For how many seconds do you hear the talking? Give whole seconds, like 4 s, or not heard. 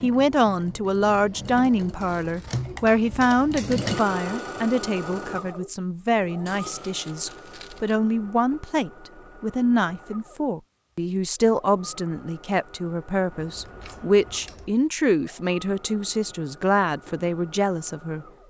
18 s.